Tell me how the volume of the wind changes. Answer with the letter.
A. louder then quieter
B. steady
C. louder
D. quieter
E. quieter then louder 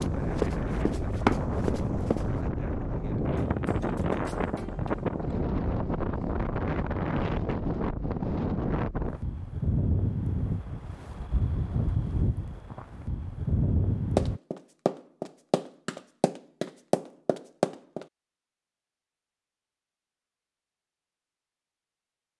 B.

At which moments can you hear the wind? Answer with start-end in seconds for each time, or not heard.
0.0-14.4.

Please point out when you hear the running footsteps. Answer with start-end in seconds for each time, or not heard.
0.0-2.2, 14.2-18.1.